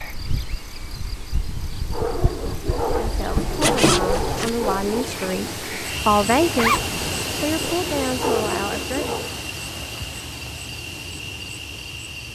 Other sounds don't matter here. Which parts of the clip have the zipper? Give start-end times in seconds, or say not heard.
3.4-4.5, 6.5-7.0.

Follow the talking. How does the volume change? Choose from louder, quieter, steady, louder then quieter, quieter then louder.
louder then quieter.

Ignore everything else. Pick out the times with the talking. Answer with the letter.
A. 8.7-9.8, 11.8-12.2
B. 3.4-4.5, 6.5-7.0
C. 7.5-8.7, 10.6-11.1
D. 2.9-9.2
D.